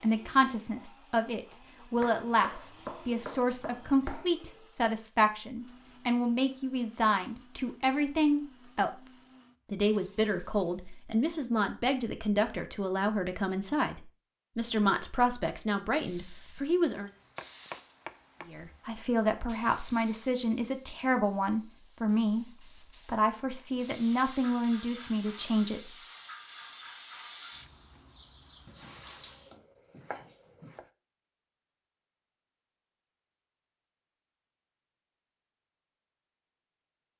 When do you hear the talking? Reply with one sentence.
You can hear the talking from 0.0 to 17.1 s and from 18.4 to 25.9 s.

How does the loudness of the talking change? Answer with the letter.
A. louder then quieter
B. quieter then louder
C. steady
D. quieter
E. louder
C.